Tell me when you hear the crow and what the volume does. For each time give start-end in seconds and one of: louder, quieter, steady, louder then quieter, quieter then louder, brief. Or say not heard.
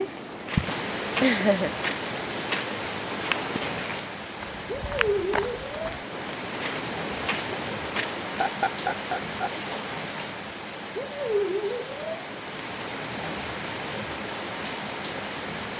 not heard.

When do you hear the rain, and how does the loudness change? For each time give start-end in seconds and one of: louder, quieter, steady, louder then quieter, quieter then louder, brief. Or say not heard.
0.0-15.7 steady.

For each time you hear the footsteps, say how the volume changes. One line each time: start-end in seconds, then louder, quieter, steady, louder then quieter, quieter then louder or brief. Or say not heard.
0.0-8.2 steady.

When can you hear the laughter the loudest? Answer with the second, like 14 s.
1 s.